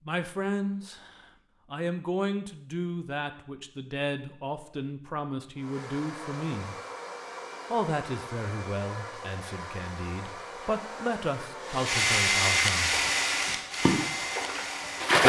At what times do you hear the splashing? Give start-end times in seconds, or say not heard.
12.8-15.2.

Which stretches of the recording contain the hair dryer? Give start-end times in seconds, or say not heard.
5.5-15.2.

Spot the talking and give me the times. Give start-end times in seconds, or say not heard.
0.1-6.8, 7.7-13.1.